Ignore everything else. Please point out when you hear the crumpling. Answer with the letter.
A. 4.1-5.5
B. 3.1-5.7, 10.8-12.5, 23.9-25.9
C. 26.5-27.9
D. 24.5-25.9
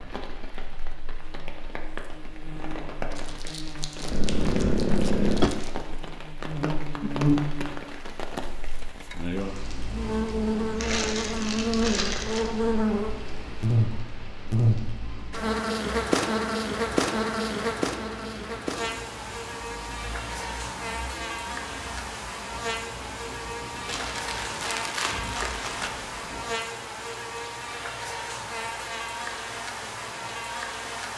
B.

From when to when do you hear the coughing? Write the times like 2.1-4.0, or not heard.
4.1-5.5.